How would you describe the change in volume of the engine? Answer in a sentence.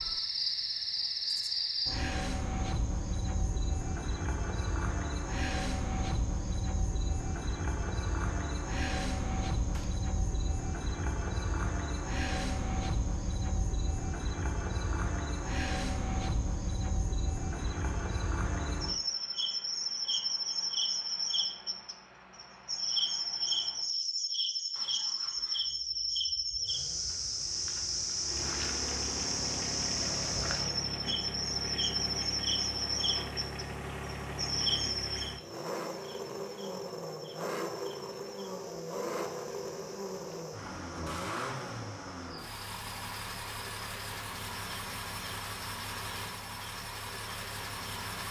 The loudness of the engine goes up.